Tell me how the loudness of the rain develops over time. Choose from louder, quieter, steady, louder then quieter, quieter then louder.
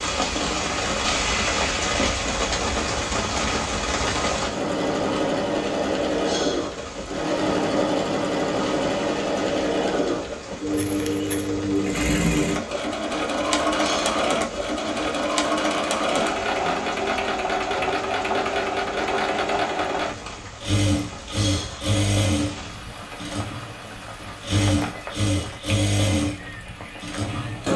quieter.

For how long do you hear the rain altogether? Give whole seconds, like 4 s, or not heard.
28 s.